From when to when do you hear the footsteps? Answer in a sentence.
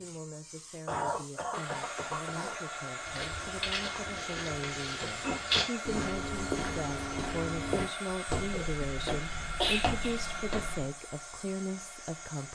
The footsteps can be heard from 3.0 to 10.9 s.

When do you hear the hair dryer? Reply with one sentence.
You can hear the hair dryer from 1.5 to 12.4 s.